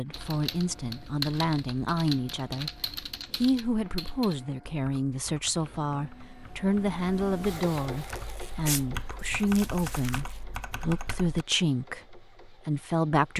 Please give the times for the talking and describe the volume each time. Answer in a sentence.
You can hear the talking briefly from 0.0 to 2.7 s; and from 3.4 to 13.3 s, at a steady volume.